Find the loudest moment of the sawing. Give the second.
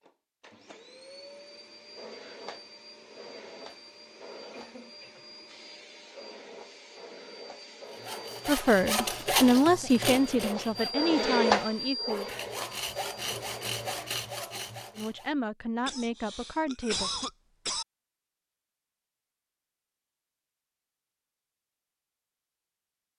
9 s.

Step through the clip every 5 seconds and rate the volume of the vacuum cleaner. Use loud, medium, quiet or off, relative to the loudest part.
quiet, quiet, loud, off, off.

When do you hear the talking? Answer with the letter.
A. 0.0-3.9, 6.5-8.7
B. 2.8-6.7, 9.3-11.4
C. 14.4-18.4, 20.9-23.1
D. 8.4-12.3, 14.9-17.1
D.